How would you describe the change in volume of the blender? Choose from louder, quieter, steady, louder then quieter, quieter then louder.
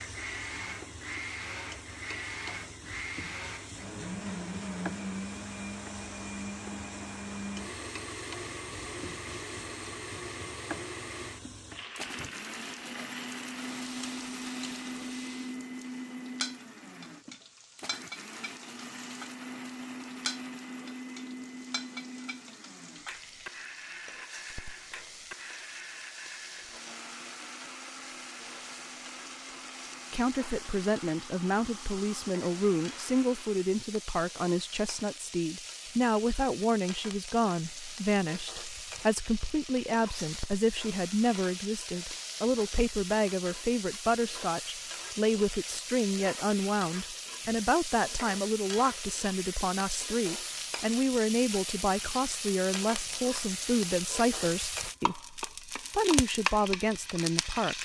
quieter.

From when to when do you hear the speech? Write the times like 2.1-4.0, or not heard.
30.1-57.8.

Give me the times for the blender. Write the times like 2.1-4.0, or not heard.
0.0-33.7.